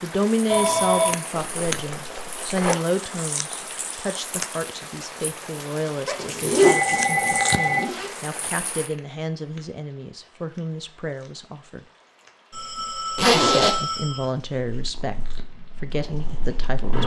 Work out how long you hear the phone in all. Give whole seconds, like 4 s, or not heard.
4 s.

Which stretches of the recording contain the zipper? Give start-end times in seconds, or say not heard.
1.4-2.8, 6.0-8.1, 13.2-13.8.